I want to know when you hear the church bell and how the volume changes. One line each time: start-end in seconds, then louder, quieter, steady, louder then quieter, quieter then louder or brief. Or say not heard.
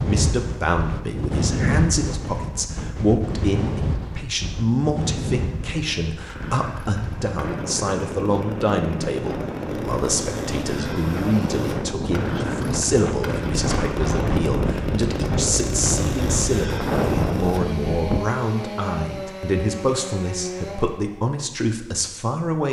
not heard.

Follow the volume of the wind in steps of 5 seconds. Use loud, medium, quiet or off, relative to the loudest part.
loud, medium, loud, loud, off.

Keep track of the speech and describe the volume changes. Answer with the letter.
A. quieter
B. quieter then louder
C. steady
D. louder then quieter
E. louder
C.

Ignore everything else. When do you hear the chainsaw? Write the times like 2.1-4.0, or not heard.
6.2-21.2.